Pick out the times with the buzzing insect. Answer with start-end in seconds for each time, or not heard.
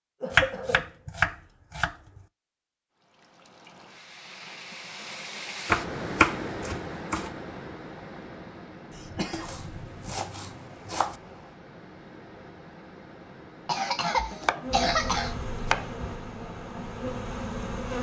14.6-17.9.